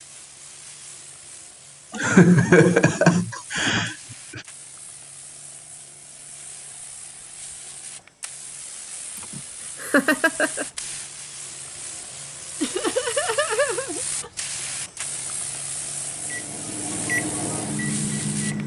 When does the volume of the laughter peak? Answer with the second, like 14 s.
2 s.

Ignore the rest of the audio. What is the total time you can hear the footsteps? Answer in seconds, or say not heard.
not heard.